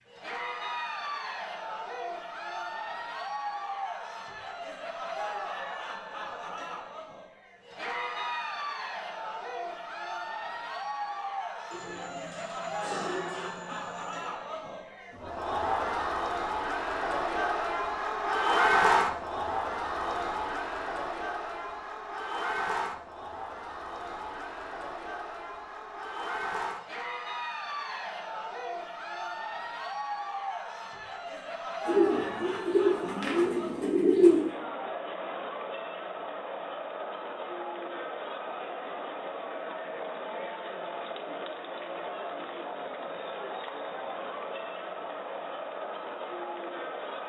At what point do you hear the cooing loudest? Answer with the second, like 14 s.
34 s.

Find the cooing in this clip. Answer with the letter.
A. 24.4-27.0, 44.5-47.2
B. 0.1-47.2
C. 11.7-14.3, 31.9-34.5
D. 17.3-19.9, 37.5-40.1
C.